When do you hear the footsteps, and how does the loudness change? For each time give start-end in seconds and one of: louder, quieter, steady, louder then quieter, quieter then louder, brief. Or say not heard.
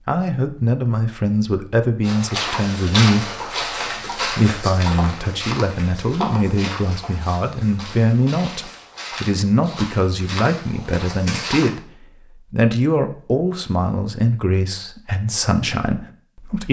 2.0-11.7 quieter.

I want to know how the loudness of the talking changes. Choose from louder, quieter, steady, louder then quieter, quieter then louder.
steady.